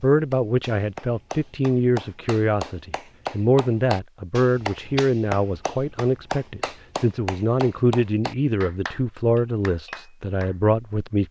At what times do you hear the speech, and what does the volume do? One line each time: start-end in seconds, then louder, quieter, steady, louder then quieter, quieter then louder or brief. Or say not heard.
0.0-11.2 steady.